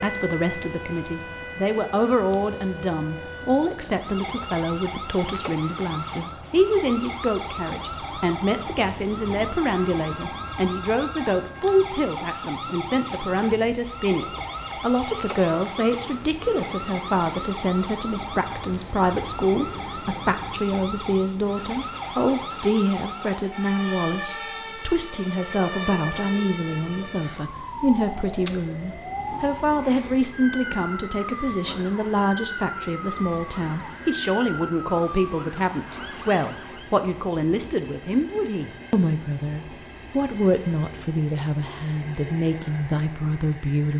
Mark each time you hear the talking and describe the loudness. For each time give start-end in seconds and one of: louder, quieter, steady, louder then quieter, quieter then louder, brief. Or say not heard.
0.0-43.9 steady.